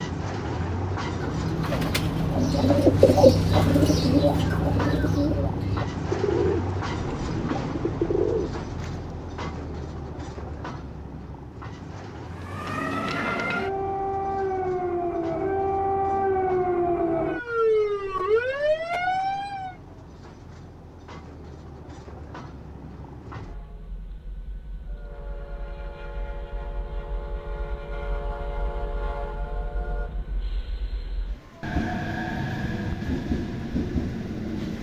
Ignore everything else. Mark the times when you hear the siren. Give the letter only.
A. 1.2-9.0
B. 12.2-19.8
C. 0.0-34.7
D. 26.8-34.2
B.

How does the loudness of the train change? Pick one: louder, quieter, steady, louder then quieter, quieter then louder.
quieter then louder.